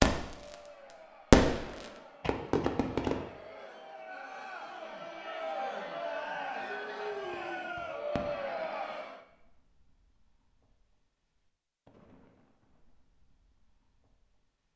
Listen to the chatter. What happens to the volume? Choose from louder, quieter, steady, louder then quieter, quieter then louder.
louder.